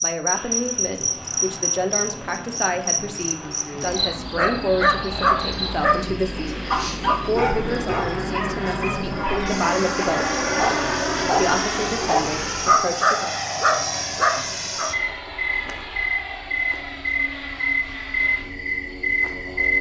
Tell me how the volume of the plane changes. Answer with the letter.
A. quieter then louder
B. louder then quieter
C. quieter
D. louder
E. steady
B.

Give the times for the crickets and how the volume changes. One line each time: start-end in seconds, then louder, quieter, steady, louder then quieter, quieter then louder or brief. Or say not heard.
0.0-19.7 quieter then louder.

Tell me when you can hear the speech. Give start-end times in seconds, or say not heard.
0.0-10.3, 11.2-13.3.